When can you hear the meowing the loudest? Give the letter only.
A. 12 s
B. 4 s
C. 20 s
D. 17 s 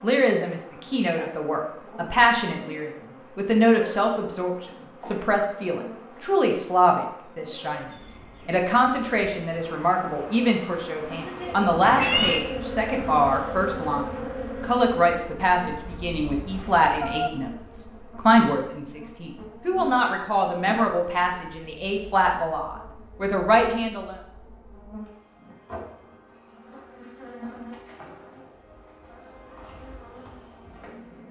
A.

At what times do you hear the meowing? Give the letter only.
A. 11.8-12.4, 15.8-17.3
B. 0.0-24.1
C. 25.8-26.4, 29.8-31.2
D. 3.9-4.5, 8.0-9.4
A.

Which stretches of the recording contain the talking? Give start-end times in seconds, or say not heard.
0.0-24.1.